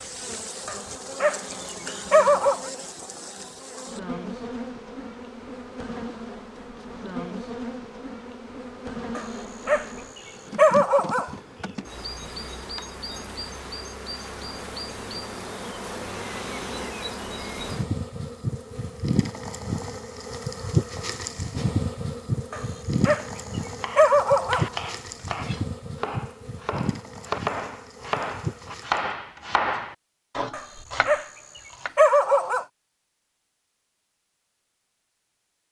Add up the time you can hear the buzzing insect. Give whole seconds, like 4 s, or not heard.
29 s.